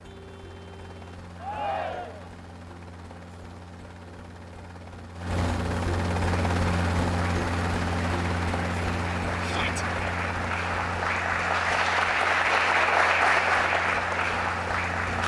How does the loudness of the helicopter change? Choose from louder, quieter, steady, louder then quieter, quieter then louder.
louder then quieter.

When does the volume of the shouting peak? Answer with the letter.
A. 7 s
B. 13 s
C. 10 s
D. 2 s
D.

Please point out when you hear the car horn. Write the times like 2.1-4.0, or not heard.
0.0-1.2.